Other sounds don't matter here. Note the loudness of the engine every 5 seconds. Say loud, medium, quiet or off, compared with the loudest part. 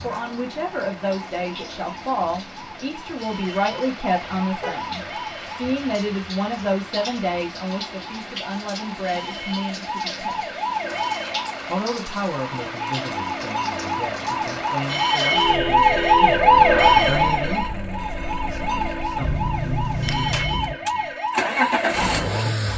quiet, quiet, quiet, medium, loud.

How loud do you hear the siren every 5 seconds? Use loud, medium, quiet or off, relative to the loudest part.
quiet, quiet, medium, loud, medium.